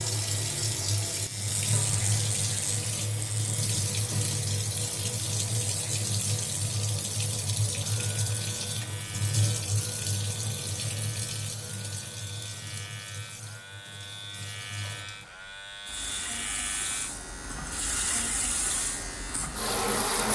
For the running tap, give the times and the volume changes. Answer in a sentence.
The running tap can be heard from 0.0 to 20.3 s, getting quieter then louder.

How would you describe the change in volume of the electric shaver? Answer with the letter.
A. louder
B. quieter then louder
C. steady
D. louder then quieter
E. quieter
B.